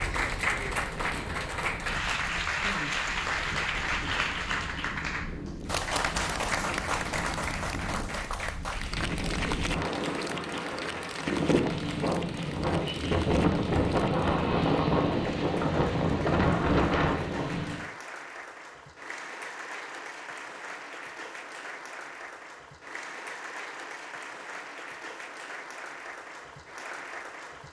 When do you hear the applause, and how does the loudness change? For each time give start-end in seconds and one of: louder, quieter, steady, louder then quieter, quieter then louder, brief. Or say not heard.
0.0-27.6 quieter.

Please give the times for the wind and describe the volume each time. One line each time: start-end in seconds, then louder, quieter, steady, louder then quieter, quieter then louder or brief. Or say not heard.
0.0-17.9 louder.